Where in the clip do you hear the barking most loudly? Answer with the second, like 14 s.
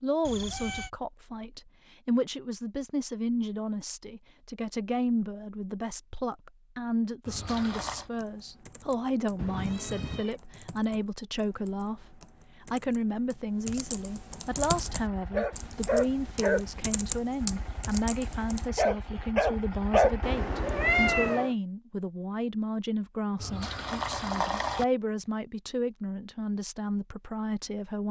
20 s.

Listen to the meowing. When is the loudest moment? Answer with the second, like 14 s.
21 s.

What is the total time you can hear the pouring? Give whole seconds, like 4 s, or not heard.
2 s.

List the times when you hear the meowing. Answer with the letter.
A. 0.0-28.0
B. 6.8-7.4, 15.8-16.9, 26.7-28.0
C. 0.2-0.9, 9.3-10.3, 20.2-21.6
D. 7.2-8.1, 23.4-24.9
C.